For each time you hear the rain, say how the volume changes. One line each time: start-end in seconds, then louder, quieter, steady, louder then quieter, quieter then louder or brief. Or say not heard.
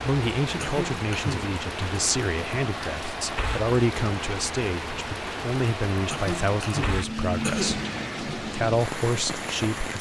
0.0-9.9 steady.